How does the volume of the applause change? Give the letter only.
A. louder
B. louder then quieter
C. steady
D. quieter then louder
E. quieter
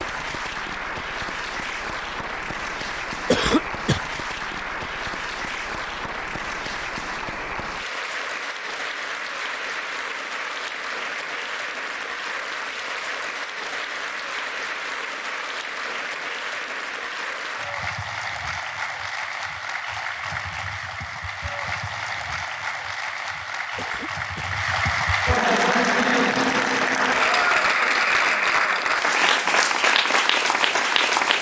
A.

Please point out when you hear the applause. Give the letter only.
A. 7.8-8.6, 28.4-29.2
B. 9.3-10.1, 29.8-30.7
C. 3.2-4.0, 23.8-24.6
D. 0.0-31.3
D.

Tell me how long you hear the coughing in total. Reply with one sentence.
The coughing can be heard for 2 seconds in total.